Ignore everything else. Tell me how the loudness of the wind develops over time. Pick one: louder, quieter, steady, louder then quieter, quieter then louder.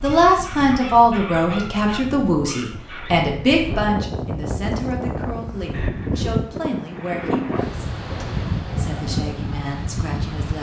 louder.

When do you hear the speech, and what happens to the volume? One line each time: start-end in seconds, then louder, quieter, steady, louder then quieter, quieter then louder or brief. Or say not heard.
0.0-10.5 quieter.